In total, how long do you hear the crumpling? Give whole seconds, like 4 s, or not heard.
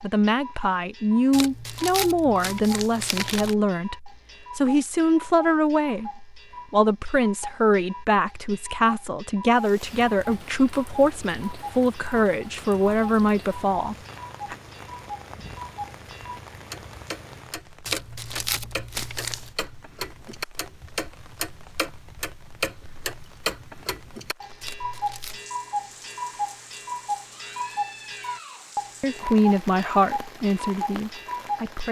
5 s.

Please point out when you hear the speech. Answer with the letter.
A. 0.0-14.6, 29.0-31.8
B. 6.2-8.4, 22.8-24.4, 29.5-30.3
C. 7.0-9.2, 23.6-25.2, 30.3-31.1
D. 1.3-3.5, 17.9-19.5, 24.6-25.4
A.